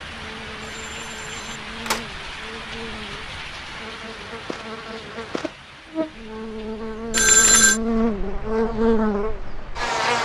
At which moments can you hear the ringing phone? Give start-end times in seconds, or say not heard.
0.7-2.1, 7.1-7.8.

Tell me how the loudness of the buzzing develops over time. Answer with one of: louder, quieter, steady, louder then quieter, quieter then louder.
louder.